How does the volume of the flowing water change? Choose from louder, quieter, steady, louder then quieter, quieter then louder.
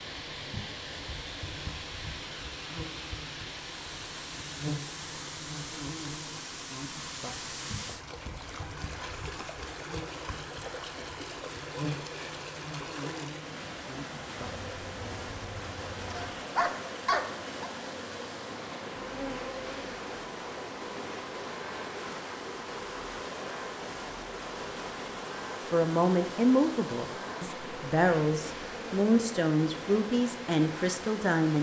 steady.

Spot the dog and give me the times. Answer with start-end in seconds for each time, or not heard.
16.1-17.5.